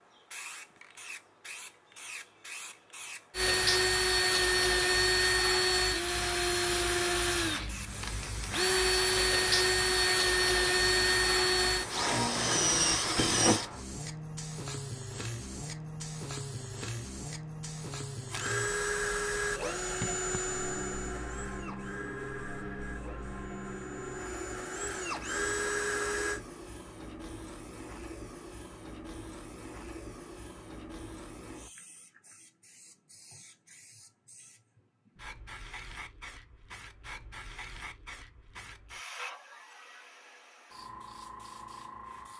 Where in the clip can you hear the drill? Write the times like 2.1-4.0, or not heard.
3.3-13.7, 18.2-26.4.